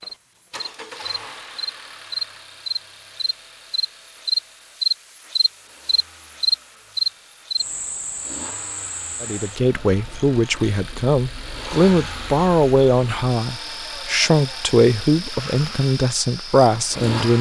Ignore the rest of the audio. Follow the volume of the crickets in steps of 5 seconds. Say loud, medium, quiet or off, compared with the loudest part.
loud, loud, quiet, quiet.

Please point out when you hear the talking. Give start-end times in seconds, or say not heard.
9.2-17.3.